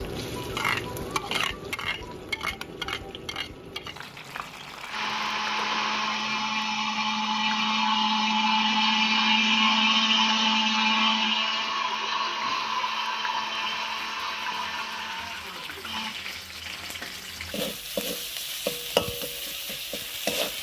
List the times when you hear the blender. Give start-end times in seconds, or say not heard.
4.8-16.1.